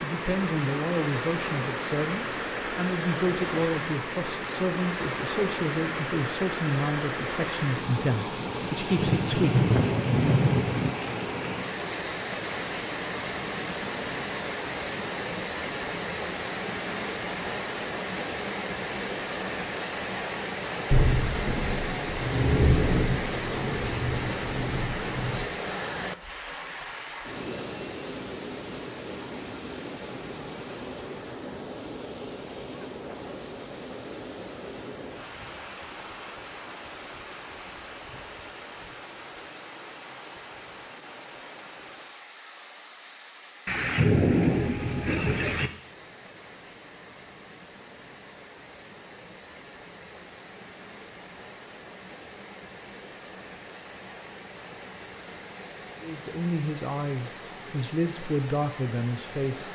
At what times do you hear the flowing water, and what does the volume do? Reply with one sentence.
You can hear the flowing water from 0.0 to 59.7 s, getting quieter.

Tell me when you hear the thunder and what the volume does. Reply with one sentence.
You can hear the thunder briefly from 8.9 to 10.9 s; from 20.9 to 25.4 s, getting louder then quieter; and briefly from 43.6 to 45.7 s.